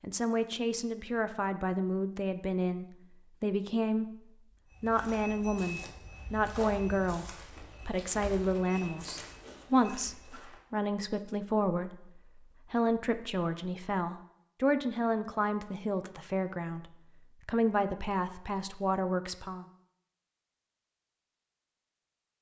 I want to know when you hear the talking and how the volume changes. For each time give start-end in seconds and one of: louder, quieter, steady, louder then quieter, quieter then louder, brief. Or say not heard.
0.0-19.6 steady.